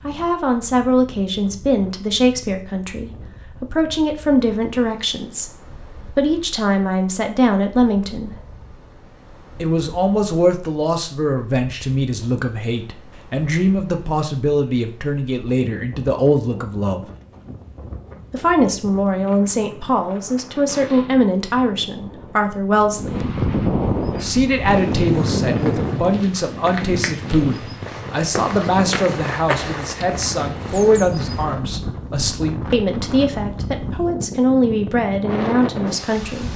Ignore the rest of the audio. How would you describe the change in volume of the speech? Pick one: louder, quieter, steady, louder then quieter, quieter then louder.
steady.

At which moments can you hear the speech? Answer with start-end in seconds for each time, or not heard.
0.1-8.3, 9.6-17.1, 18.3-23.2, 24.2-36.5.